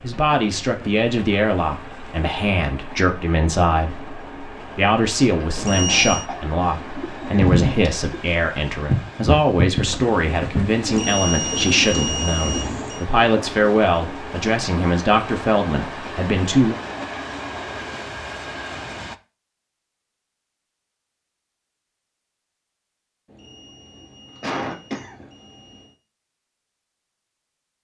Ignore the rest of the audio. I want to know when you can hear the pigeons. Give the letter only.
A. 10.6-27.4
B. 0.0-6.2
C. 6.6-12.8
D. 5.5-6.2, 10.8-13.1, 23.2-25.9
C.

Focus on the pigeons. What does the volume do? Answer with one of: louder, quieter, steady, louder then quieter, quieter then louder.
quieter.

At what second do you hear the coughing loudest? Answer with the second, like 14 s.
25 s.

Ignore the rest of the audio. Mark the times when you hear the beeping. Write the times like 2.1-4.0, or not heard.
5.5-6.2, 10.8-13.1, 23.2-25.9.